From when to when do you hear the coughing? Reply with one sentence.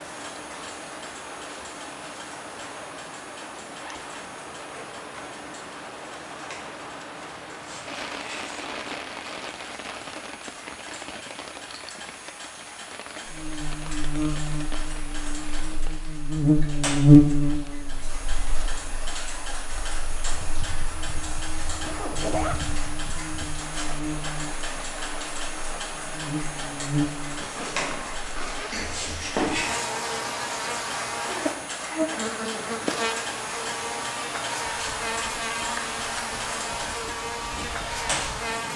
You can't hear the coughing here.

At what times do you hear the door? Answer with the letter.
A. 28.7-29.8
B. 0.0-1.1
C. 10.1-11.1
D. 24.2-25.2
A.